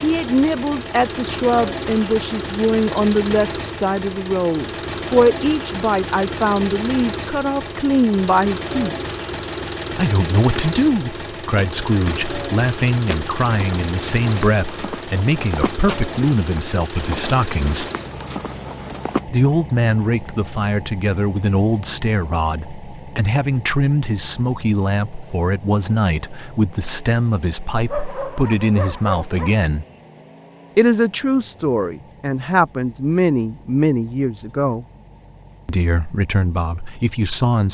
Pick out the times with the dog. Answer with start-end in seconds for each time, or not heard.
27.9-29.6.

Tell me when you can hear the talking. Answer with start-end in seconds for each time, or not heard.
0.0-8.9, 9.9-17.9, 19.2-29.9, 30.8-34.9, 35.6-37.6.